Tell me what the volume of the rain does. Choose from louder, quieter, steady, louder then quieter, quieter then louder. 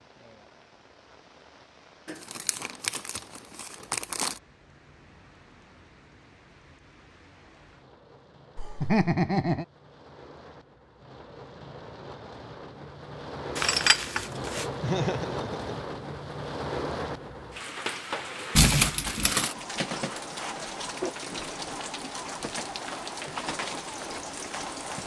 louder.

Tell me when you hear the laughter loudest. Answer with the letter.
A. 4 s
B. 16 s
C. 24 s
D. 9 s
D.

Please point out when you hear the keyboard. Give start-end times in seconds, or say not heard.
not heard.